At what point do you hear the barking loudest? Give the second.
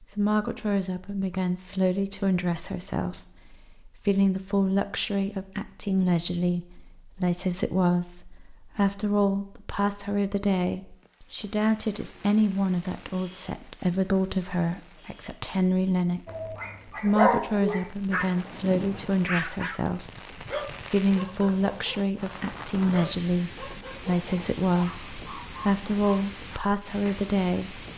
17 s.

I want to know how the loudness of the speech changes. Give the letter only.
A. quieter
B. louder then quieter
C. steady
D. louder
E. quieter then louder
C.